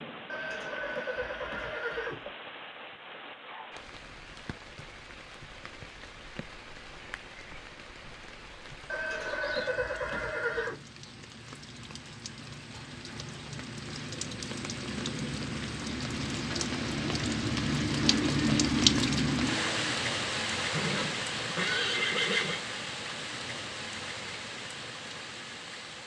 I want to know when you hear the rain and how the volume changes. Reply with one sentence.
You can hear the rain from 0.0 to 26.0 s, getting louder then quieter.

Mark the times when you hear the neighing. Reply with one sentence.
You can hear the neighing from 0.2 to 2.3 s, from 8.8 to 10.8 s and from 20.7 to 22.6 s.